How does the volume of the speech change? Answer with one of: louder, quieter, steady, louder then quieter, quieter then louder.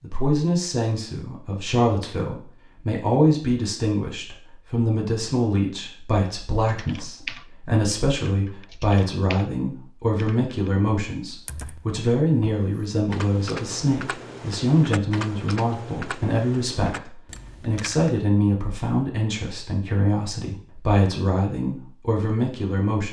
steady.